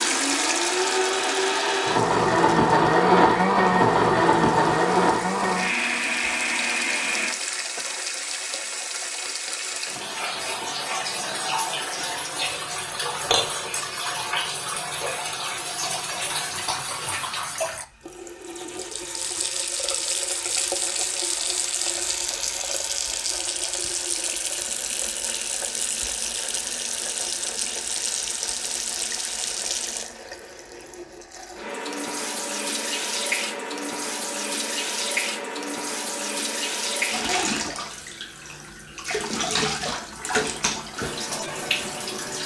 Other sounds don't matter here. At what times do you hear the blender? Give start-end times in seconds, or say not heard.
0.0-7.3.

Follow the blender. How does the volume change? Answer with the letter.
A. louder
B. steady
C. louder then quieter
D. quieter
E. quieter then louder
C.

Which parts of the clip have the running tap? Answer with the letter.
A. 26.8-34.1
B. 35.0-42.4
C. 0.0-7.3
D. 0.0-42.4
D.